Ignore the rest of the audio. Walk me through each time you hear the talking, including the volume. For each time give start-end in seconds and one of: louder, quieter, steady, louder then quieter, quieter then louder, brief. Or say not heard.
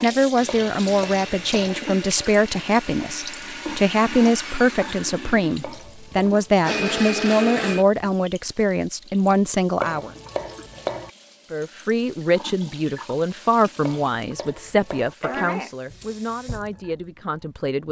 0.0-10.1 steady
11.5-17.8 quieter.